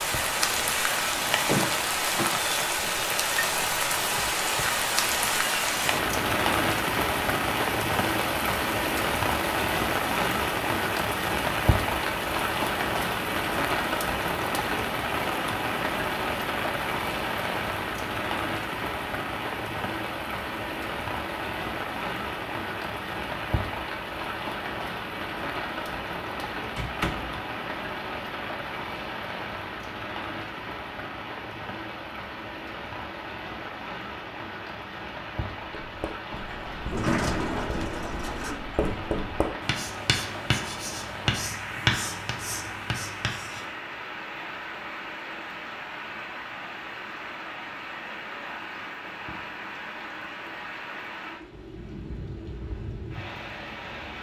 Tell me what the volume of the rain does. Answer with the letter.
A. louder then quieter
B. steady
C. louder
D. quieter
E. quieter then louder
D.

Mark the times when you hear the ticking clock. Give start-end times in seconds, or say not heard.
not heard.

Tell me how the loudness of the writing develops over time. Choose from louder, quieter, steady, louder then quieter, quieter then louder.
louder.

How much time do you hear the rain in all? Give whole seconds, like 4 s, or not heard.
54 s.